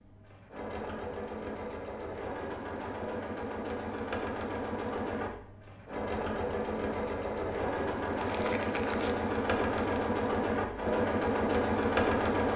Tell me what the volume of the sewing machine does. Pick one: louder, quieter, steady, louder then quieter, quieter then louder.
louder.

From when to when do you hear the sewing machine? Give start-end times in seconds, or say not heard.
0.0-12.5.